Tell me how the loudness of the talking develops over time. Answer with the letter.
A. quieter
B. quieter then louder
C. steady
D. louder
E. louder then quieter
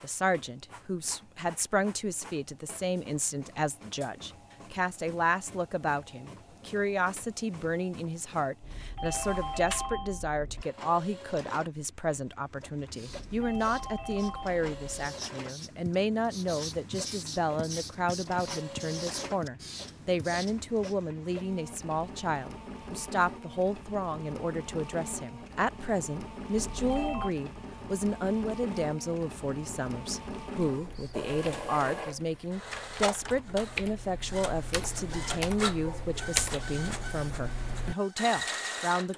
C.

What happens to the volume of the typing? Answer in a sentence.
The loudness of the typing goes up.